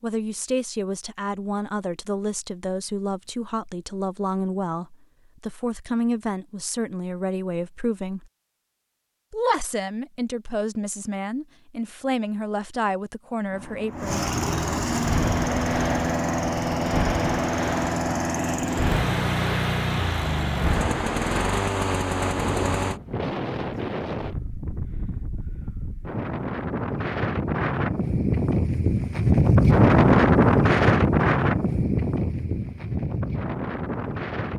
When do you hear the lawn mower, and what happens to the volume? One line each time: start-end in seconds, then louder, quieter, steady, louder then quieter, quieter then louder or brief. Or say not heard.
13.4-23.0 steady.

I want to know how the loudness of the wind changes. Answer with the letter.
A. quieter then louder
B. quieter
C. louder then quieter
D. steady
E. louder
E.